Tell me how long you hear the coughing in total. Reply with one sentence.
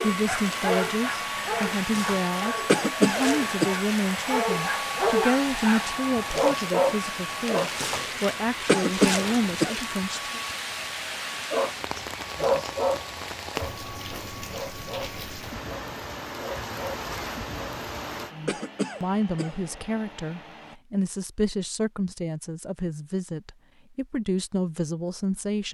The coughing can be heard for 3 seconds in total.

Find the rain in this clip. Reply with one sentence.
You can hear the rain from 0.2 to 18.4 s.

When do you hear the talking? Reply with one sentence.
You can hear the talking from 0.0 to 10.4 s and from 18.3 to 25.6 s.